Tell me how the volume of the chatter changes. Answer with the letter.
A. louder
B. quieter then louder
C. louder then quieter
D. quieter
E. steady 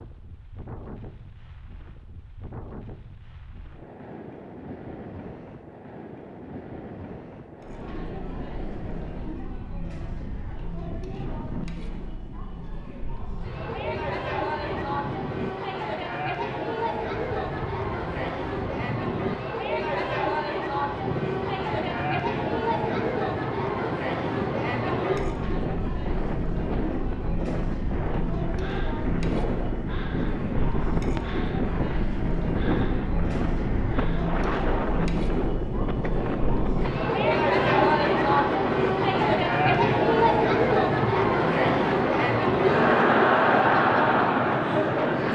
A.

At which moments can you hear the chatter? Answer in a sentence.
You can hear the chatter from 7.6 to 45.3 s.